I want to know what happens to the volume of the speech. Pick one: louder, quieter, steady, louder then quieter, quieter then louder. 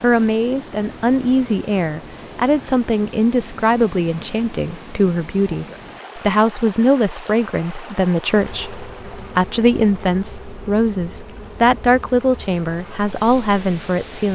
steady.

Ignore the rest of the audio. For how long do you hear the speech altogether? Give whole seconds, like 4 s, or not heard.
14 s.